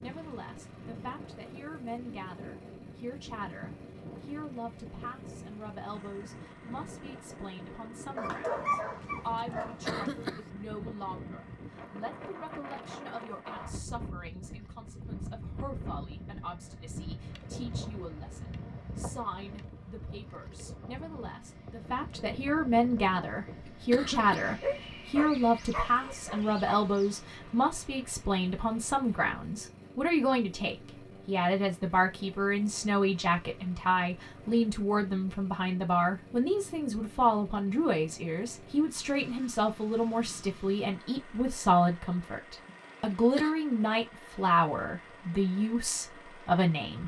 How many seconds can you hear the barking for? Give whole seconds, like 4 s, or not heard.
5 s.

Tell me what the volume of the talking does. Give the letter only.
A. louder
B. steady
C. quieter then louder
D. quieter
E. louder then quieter
A.